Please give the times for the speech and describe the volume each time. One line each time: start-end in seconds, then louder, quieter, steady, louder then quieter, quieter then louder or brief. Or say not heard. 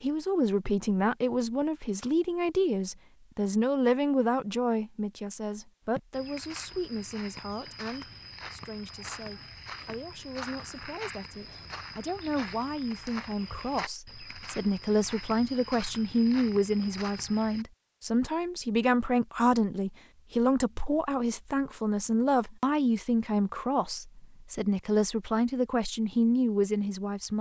0.0-27.3 quieter then louder.